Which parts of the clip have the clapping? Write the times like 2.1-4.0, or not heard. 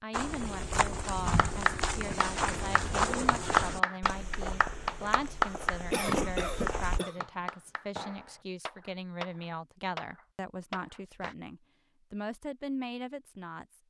1.4-11.3.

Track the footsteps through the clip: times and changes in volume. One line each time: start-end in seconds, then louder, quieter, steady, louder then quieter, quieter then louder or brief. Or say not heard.
0.1-7.0 quieter.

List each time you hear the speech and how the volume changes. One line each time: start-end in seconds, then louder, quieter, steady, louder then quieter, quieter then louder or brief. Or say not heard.
0.0-13.7 steady.